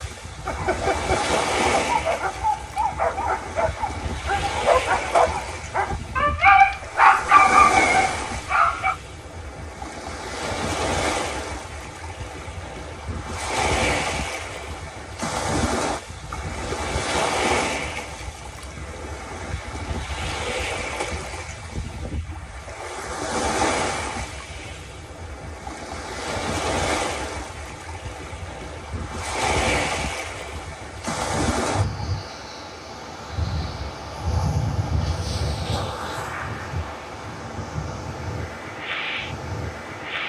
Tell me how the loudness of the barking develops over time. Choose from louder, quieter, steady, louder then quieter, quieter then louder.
louder.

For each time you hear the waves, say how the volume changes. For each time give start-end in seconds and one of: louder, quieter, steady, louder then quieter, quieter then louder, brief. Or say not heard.
0.0-40.2 steady.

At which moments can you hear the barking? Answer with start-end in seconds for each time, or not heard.
0.5-8.9.